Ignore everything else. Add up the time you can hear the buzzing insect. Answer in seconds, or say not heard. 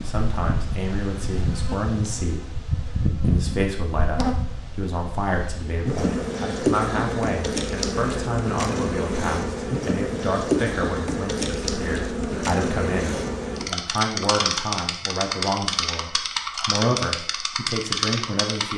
19 s.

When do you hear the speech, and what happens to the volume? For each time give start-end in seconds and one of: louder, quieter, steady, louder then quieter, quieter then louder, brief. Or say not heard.
0.0-18.7 steady.